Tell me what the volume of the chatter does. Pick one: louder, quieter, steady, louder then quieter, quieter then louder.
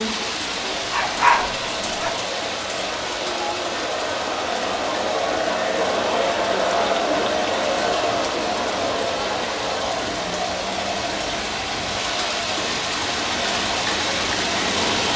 louder then quieter.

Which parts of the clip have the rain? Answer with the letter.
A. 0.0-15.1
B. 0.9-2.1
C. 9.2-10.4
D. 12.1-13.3
A.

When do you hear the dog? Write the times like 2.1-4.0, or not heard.
0.9-2.1.